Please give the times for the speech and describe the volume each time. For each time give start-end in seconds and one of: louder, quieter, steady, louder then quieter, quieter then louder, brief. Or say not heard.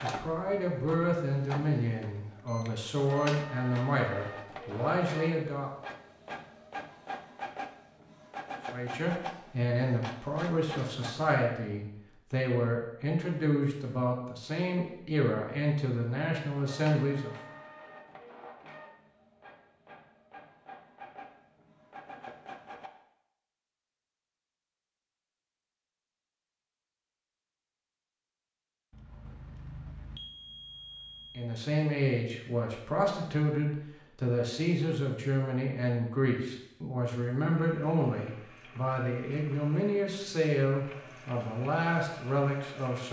0.0-5.7 steady
8.7-17.4 steady
31.4-43.0 steady.